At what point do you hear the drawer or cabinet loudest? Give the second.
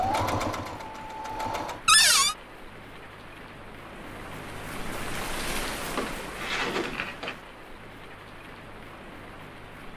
2 s.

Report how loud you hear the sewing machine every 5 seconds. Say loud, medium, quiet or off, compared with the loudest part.
loud, off.